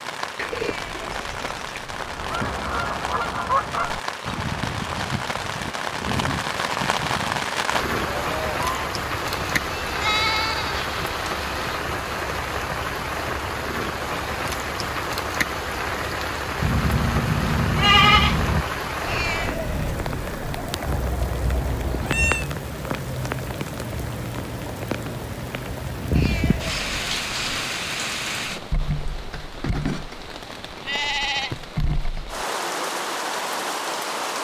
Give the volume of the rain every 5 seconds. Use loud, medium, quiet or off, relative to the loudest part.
medium, loud, loud, loud, loud, loud, loud.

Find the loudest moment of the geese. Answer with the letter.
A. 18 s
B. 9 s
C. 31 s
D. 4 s
D.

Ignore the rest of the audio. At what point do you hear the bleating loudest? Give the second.
18 s.